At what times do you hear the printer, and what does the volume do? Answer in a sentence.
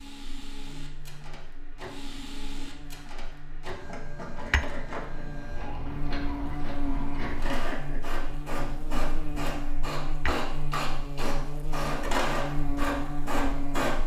You can hear the printer from 0.0 to 14.0 s, getting louder.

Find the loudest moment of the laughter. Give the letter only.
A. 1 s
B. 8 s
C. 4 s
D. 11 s
B.